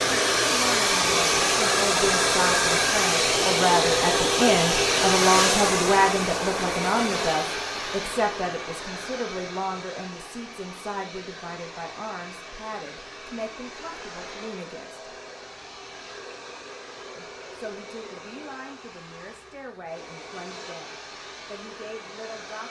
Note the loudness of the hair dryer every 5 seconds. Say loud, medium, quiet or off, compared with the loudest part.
loud, medium, quiet, quiet, quiet.